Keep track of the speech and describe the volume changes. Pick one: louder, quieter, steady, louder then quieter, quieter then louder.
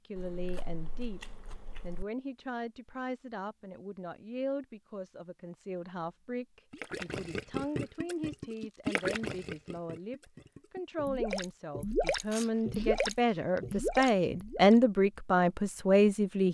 louder.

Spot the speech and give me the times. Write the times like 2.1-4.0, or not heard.
0.1-16.4.